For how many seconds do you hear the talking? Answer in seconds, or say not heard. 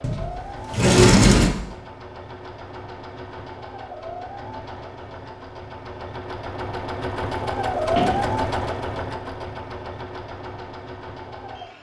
not heard.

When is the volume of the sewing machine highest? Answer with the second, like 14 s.
8 s.